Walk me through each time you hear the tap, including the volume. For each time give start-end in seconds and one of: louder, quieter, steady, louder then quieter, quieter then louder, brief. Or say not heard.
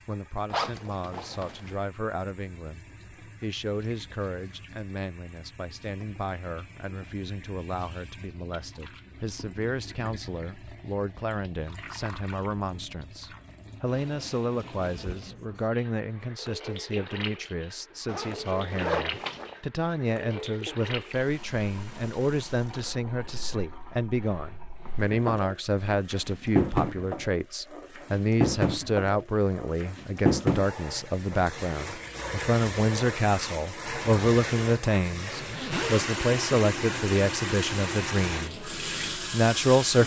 0.0-40.0 louder.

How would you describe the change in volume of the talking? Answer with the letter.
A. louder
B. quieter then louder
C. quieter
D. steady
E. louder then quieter
A.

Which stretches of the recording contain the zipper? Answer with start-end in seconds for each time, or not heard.
0.5-1.8, 18.1-19.6, 35.2-36.0.